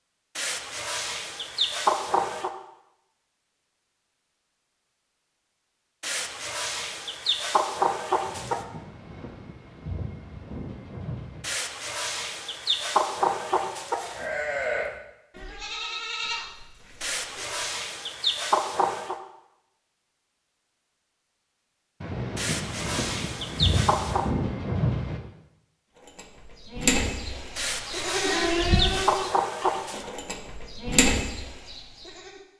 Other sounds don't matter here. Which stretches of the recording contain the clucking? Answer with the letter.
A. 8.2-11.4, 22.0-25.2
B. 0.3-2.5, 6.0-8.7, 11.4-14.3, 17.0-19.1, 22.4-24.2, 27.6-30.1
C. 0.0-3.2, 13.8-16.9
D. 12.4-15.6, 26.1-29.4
B.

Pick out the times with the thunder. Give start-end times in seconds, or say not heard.
8.2-11.4, 22.0-25.2.